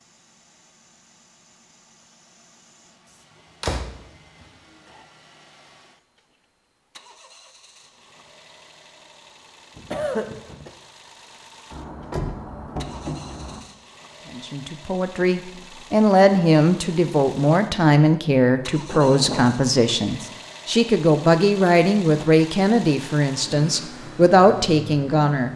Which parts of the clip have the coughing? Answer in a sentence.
The coughing can be heard from 9.8 to 10.7 s.